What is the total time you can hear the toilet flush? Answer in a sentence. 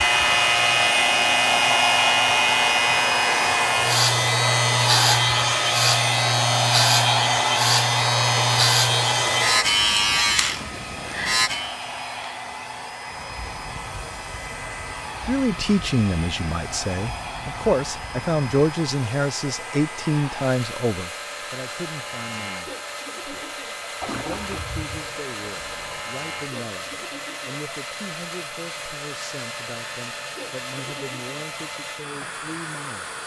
You can hear the toilet flush for 2 seconds altogether.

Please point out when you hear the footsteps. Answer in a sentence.
The footsteps can't be heard in this clip.